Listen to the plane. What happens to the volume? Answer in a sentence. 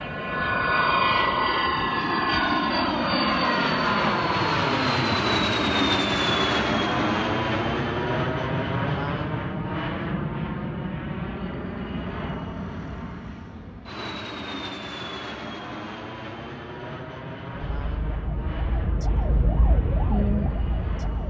The volume of the plane goes down.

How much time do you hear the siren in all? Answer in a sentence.
The siren can be heard for 4 seconds in total.